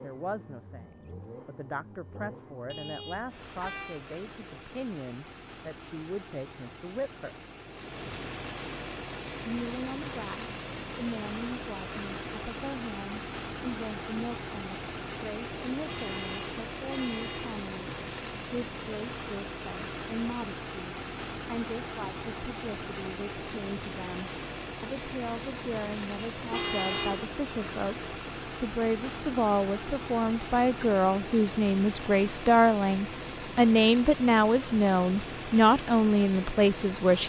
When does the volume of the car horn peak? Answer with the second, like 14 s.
27 s.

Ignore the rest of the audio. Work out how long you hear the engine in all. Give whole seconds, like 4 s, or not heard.
37 s.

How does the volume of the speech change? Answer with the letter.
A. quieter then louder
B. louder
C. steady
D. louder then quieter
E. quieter
B.